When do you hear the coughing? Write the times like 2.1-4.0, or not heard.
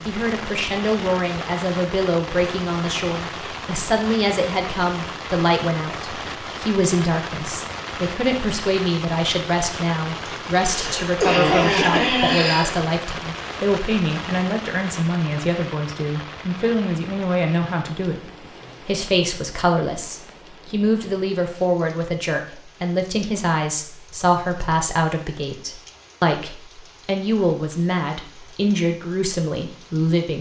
10.2-12.8.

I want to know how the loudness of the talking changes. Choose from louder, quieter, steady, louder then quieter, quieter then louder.
steady.